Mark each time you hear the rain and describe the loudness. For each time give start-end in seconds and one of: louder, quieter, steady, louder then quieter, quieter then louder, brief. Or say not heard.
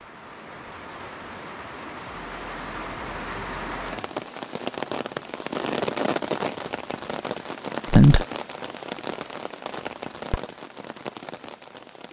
0.0-12.0 louder then quieter.